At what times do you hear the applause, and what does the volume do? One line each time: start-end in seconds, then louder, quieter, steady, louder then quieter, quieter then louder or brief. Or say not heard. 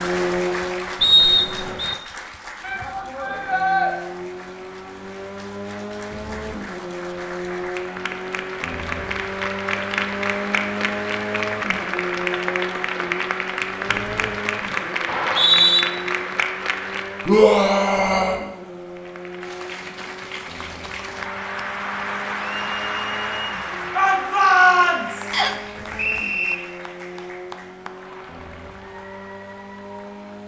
0.0-17.4 quieter then louder
18.9-30.4 louder then quieter.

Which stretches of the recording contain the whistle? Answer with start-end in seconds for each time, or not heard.
1.0-1.9, 15.1-15.8, 25.3-26.6.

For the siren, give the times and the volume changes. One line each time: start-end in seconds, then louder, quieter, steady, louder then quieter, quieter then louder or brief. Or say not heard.
not heard.